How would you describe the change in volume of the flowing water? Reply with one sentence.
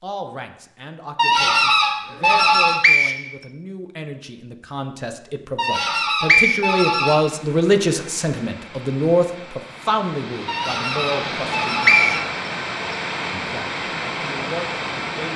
The loudness of the flowing water goes up.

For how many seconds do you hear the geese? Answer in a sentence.
The geese can be heard for 5 seconds in total.